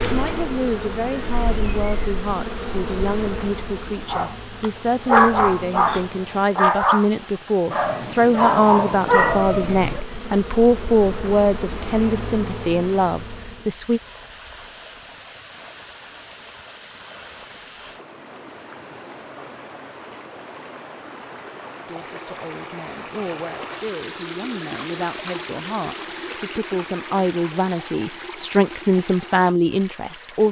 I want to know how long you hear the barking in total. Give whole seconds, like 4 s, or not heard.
5 s.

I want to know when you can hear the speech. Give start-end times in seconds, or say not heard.
0.0-14.0, 21.9-30.4.